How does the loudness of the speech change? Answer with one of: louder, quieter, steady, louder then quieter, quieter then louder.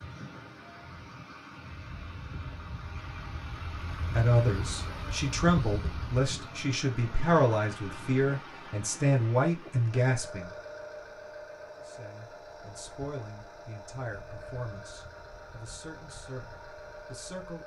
quieter.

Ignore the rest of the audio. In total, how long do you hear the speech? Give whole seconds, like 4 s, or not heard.
12 s.